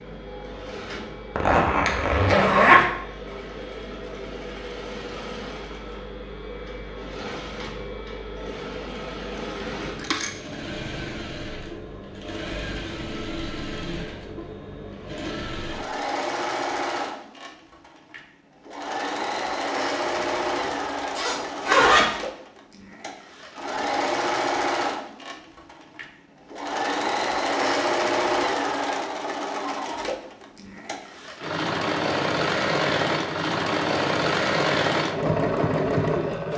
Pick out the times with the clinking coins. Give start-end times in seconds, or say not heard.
9.9-10.6.